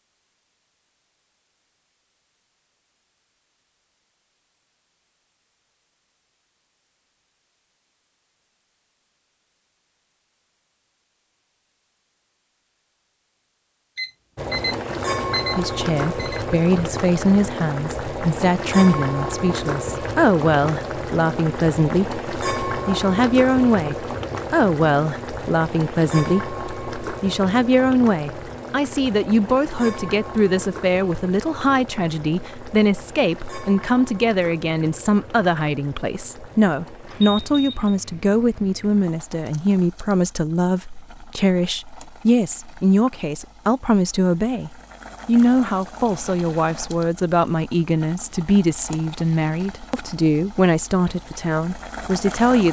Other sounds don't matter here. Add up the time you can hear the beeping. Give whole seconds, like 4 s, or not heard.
3 s.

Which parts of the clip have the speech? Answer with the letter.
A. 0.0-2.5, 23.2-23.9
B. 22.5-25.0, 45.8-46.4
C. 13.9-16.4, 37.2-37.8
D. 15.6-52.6
D.